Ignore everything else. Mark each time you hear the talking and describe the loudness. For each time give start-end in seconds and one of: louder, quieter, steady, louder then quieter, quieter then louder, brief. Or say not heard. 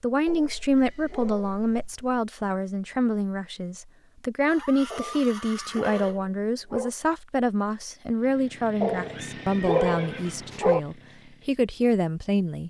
0.0-12.6 steady.